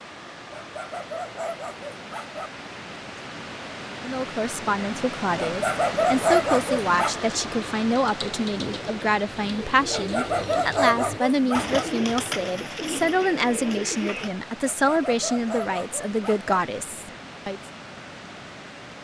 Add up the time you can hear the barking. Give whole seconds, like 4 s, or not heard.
8 s.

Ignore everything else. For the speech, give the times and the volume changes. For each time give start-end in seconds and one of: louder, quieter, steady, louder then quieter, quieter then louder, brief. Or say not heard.
4.0-17.6 steady.